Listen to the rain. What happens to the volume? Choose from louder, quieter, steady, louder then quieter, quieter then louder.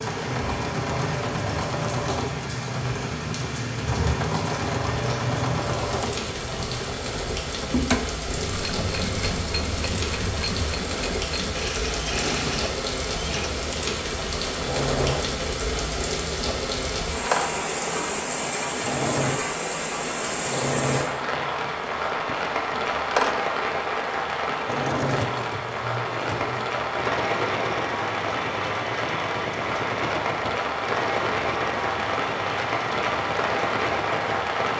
steady.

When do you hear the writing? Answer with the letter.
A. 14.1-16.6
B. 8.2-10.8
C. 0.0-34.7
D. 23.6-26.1
B.